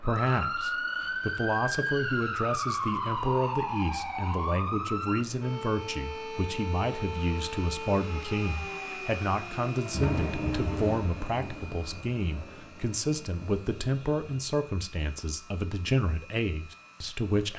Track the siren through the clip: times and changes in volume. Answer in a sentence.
The siren can be heard from 0.0 to 10.8 s, getting quieter.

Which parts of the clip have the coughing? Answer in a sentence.
You can't hear the coughing here.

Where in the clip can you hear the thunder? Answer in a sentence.
You can hear the thunder from 9.8 to 14.2 s.